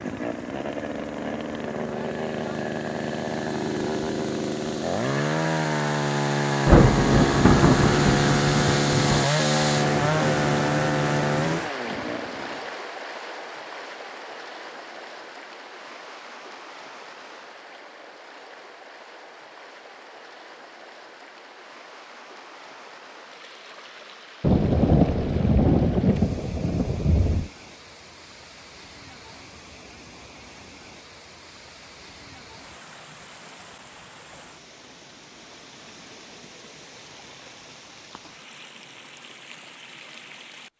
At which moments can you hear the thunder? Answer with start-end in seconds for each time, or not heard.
6.7-9.3, 24.4-27.5.